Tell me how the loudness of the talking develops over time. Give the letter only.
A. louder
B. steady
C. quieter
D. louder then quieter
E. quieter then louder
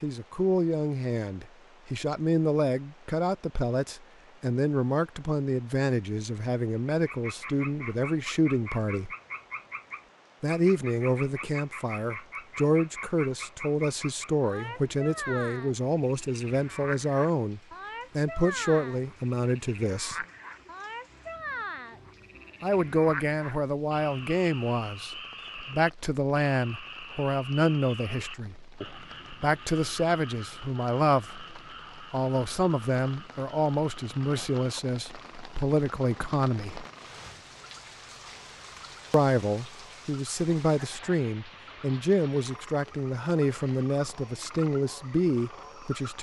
B.